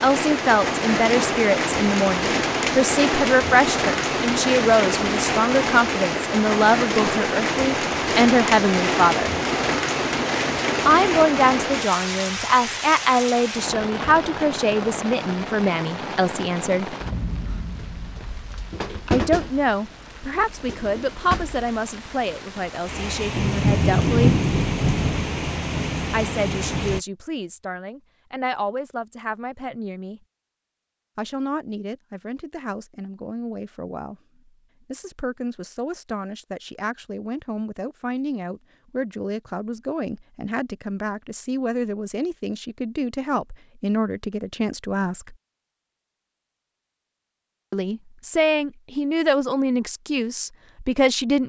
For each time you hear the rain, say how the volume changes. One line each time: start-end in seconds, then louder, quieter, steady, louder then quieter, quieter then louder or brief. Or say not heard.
0.0-27.0 quieter then louder.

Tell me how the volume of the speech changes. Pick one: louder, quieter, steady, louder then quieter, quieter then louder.
quieter then louder.